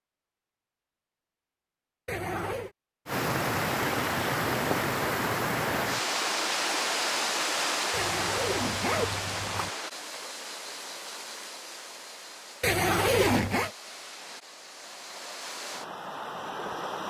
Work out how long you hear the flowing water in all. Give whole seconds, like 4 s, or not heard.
14 s.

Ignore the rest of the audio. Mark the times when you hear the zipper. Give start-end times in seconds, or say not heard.
2.0-2.7, 7.9-9.7, 12.6-13.7.